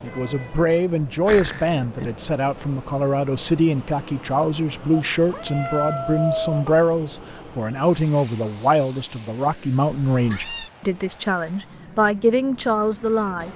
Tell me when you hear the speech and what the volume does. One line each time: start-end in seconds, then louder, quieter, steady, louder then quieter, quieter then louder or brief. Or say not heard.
0.0-13.5 steady.